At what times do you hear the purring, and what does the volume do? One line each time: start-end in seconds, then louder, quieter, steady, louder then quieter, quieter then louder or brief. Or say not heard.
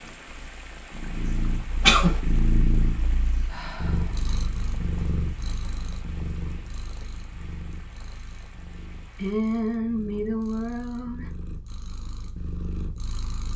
0.0-13.5 quieter then louder.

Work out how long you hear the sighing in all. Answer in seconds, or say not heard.
3 s.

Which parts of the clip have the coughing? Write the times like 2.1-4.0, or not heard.
1.8-2.2.